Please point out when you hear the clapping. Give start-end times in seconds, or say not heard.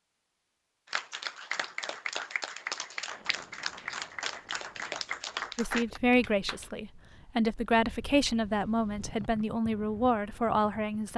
0.8-6.7.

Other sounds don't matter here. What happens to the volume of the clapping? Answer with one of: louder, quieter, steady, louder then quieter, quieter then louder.
steady.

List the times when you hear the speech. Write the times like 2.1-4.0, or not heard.
5.5-11.1.